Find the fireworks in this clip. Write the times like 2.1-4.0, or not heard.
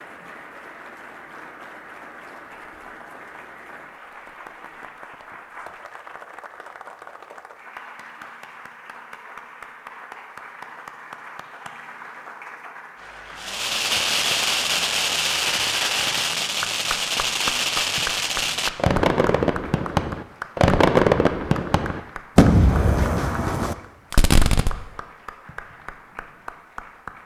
13.4-24.8.